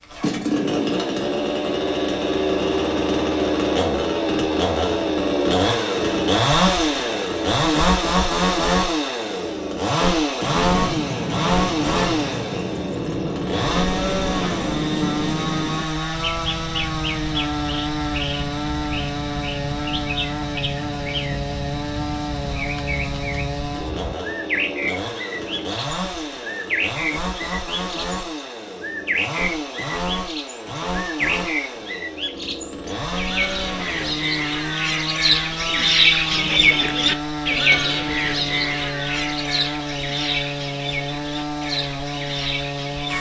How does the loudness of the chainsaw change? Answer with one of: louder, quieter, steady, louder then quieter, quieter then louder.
quieter.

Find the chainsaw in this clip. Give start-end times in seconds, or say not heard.
0.0-43.1.